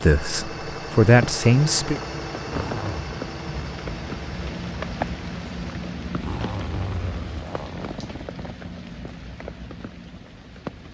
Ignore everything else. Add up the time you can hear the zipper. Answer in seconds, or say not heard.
3 s.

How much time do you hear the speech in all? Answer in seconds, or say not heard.
2 s.